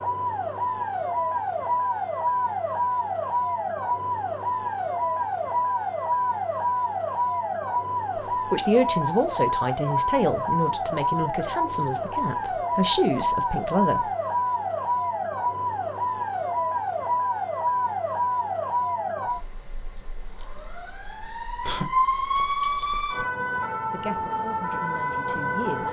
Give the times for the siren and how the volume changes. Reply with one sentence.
The siren can be heard from 0.0 to 25.8 s, at a steady volume.